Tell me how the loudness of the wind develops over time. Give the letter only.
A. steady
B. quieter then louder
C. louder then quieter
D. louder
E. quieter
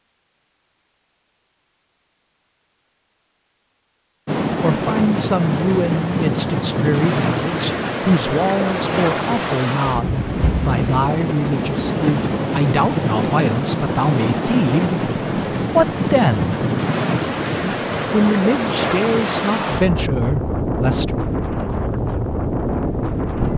A.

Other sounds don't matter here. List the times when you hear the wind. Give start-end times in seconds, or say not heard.
4.2-23.5.